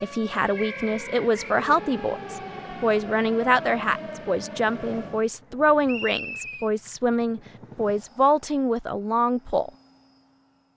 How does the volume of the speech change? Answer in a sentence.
The loudness of the speech stays about the same.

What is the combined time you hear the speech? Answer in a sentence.
The speech can be heard for 10 seconds in total.